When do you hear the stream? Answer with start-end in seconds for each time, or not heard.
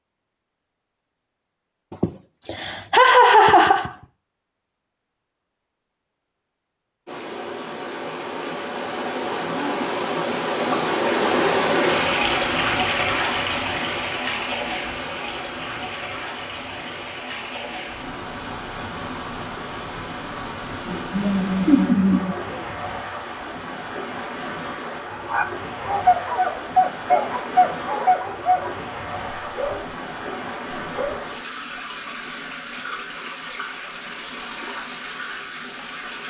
7.0-36.2.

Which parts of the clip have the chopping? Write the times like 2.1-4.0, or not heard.
not heard.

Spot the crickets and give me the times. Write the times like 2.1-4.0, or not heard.
not heard.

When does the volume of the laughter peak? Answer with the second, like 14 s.
3 s.